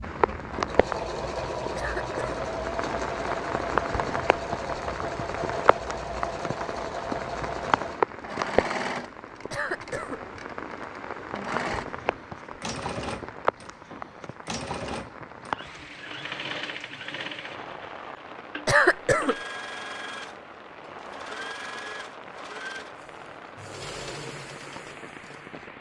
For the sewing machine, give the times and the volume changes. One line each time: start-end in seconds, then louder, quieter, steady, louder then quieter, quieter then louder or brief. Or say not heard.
0.0-25.7 quieter.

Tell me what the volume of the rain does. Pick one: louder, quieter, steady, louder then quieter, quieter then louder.
quieter.